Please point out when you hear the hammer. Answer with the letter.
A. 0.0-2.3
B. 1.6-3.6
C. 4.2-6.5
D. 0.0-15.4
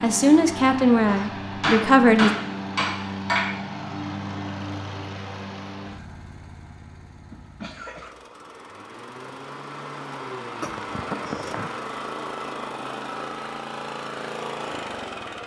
B.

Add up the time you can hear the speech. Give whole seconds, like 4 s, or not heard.
2 s.